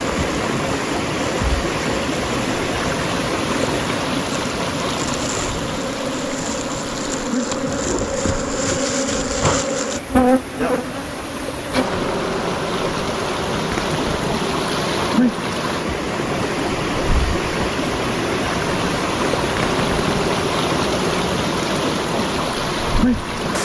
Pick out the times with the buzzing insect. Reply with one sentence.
You can hear the buzzing insect from 0.0 to 23.6 s.